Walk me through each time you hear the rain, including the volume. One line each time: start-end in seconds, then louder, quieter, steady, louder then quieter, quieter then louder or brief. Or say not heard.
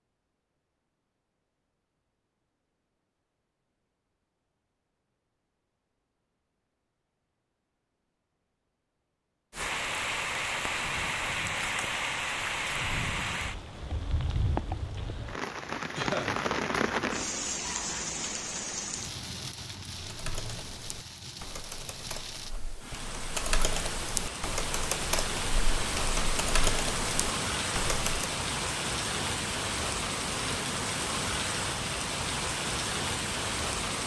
9.5-34.0 quieter then louder.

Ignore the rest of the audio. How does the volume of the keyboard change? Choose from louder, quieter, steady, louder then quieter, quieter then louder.
louder.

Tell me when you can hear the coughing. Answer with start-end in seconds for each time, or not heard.
15.9-16.4.